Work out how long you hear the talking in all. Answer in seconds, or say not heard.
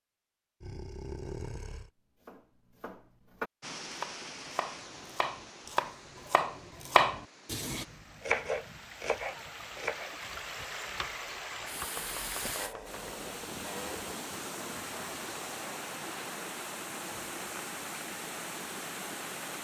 not heard.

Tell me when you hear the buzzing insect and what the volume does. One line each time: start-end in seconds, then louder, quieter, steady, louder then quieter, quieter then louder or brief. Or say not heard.
not heard.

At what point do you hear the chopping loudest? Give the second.
7 s.